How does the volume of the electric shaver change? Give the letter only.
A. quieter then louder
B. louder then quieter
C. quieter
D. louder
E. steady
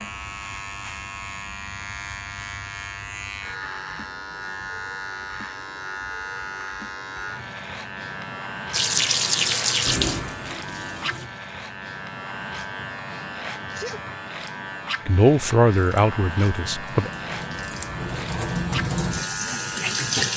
E.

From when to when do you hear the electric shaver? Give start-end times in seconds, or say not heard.
0.0-20.3.